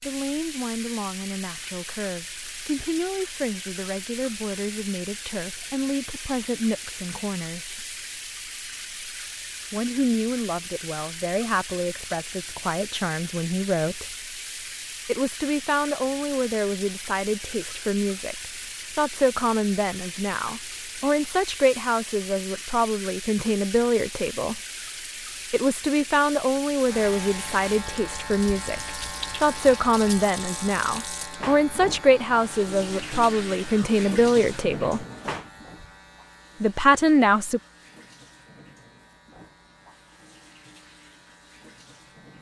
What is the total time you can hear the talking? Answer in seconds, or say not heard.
32 s.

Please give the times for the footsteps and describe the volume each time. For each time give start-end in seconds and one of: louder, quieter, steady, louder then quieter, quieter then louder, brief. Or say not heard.
not heard.